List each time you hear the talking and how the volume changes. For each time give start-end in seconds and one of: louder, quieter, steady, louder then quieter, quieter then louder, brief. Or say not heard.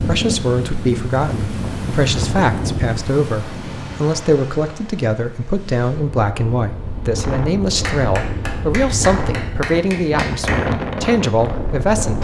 0.0-12.1 steady.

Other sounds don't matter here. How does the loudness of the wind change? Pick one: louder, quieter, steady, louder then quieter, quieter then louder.
quieter then louder.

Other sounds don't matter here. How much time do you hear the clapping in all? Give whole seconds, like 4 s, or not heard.
3 s.